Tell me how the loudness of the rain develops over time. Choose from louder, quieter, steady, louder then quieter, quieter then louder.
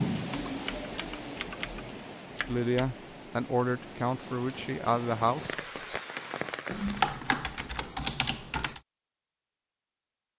quieter then louder.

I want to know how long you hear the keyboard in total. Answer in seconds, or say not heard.
5 s.